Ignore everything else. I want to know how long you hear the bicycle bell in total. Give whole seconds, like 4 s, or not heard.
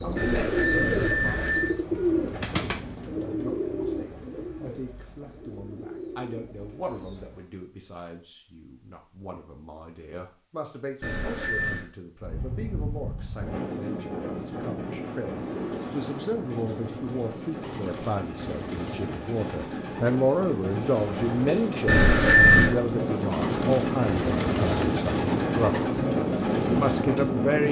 3 s.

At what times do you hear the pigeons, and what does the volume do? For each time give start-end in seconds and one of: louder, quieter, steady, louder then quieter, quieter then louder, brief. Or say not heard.
0.0-7.5 quieter
15.3-27.4 louder.